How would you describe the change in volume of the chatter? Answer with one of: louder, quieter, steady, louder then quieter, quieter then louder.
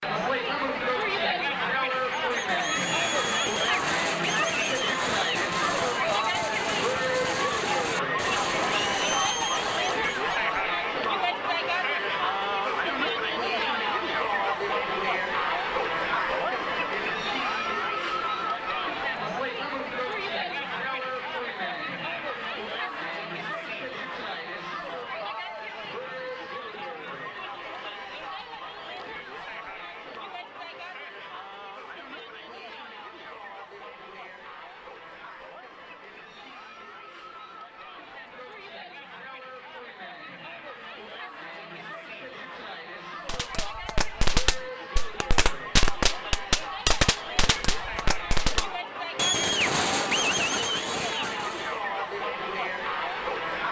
quieter then louder.